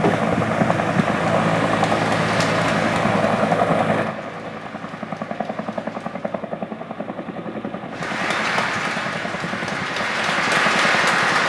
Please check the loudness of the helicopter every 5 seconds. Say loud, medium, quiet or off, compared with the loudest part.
loud, medium, medium.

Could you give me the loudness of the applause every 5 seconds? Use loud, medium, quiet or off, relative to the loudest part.
medium, medium, loud.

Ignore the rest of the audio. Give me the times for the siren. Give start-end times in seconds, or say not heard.
not heard.